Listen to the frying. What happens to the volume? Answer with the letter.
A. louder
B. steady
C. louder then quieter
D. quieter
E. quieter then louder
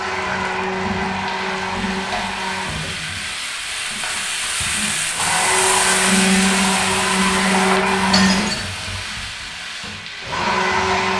C.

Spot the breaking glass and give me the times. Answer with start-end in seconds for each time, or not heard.
8.1-8.7.